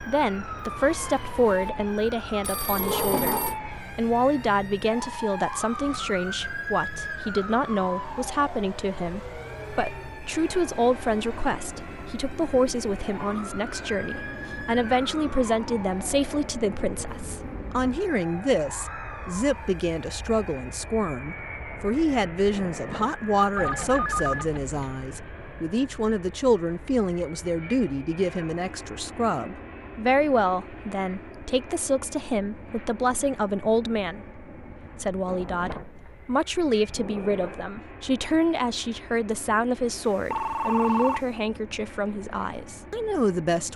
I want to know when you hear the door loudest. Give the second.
3 s.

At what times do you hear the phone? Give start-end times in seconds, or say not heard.
2.4-3.5, 23.6-24.8, 39.9-41.2.